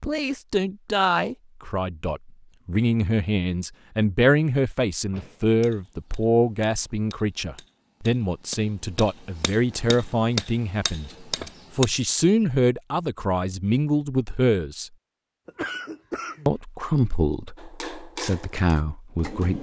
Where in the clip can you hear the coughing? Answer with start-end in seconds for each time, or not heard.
15.4-16.6.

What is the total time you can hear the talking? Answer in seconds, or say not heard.
18 s.